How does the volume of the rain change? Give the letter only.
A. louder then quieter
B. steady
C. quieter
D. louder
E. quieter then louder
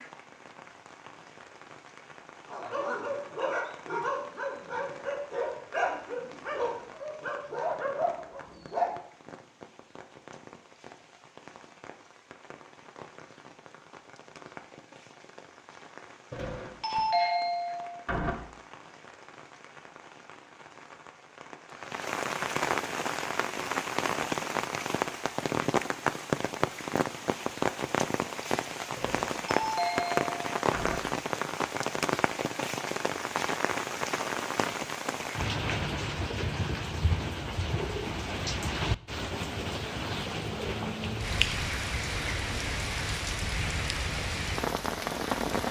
D.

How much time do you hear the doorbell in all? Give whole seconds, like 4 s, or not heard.
4 s.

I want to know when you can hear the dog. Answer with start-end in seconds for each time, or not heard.
2.5-8.9.